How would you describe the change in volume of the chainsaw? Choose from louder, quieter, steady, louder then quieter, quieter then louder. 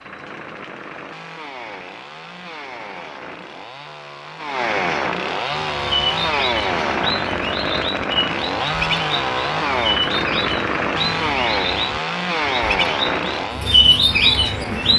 louder.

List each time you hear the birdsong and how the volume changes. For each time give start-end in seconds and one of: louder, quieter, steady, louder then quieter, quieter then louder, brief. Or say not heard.
5.5-14.9 louder.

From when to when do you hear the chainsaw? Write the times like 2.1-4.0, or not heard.
0.0-14.9.